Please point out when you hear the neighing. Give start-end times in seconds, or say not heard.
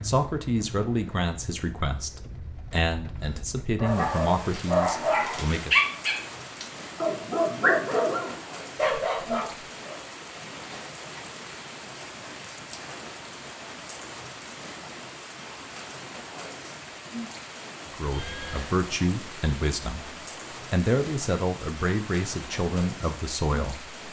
18.0-18.7.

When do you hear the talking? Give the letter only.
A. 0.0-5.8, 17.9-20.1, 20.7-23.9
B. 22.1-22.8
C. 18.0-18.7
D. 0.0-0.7
A.